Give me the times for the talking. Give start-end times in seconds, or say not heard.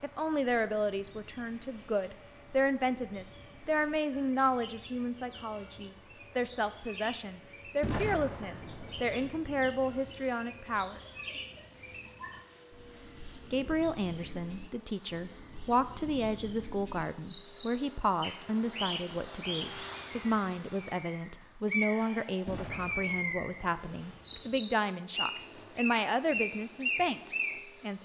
0.0-11.0, 13.5-28.0.